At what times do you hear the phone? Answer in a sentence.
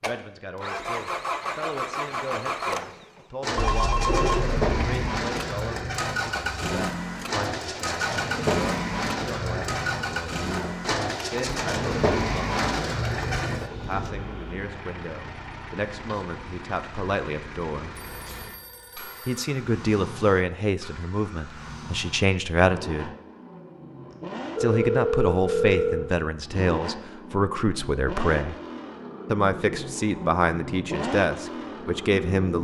You can hear the phone from 3.5 to 5.1 s, from 17.9 to 19.4 s and from 24.1 to 26.1 s.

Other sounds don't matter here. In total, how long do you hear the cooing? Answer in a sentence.
You can hear the cooing for 10 seconds altogether.